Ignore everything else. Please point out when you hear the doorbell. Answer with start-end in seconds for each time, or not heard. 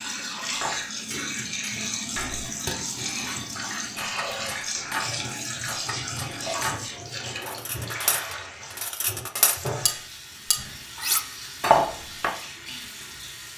not heard.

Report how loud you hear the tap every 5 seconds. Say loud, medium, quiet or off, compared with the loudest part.
loud, loud, medium.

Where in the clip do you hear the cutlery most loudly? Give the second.
12 s.